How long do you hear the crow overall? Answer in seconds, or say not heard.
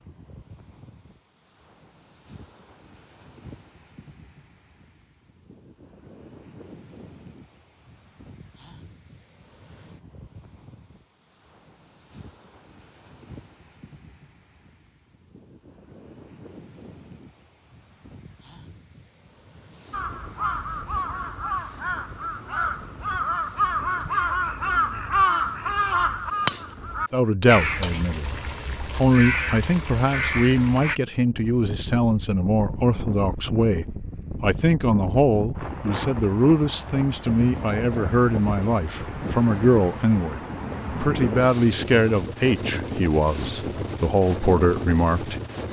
11 s.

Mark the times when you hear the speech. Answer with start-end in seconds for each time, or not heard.
27.1-28.4, 28.9-40.4, 41.0-45.4.